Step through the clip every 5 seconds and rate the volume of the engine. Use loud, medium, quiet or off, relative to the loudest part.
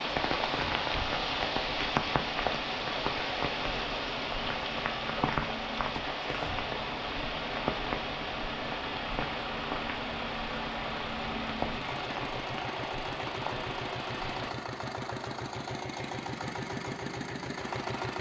medium, medium, loud, loud.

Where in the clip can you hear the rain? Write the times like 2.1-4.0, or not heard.
0.0-14.6.